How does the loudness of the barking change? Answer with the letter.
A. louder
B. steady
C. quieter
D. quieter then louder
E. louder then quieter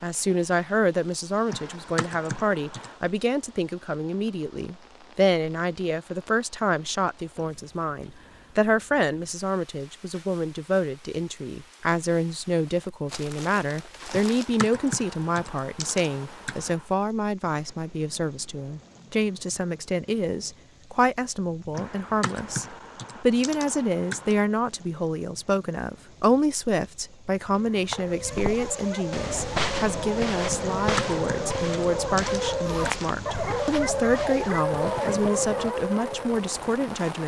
A.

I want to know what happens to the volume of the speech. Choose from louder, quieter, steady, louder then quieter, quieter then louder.
steady.